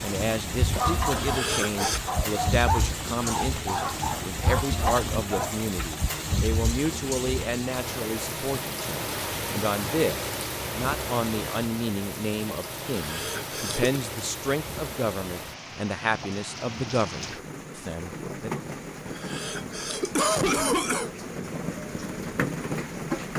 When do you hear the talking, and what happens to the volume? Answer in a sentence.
You can hear the talking from 0.0 to 18.5 s, at a steady volume.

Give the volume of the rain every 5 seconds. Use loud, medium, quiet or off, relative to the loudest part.
loud, loud, loud, medium, loud.